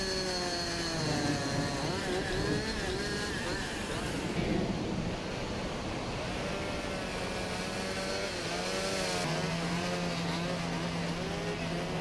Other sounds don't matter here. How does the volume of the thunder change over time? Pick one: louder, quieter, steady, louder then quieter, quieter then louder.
quieter then louder.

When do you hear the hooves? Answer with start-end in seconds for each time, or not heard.
not heard.